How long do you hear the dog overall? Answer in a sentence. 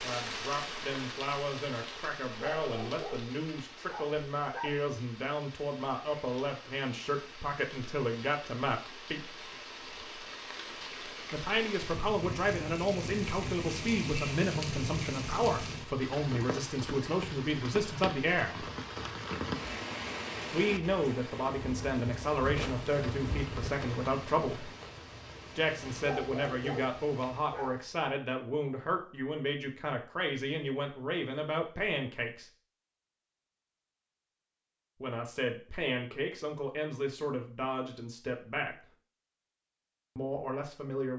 The dog can be heard for 4 seconds in total.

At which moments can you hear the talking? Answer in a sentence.
The talking can be heard from 0.0 to 9.2 s, from 11.3 to 18.6 s, from 20.5 to 24.7 s, from 25.6 to 32.5 s, from 35.0 to 38.9 s and from 40.1 to 41.1 s.